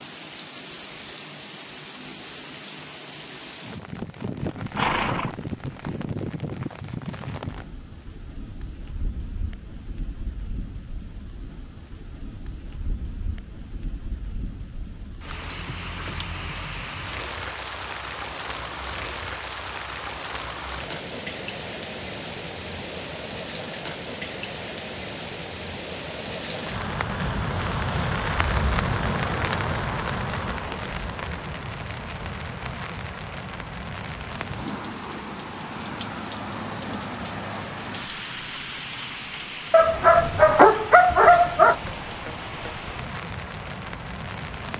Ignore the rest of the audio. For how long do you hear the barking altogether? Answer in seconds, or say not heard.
2 s.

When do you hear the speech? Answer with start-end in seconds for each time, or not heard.
not heard.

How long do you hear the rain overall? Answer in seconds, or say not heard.
45 s.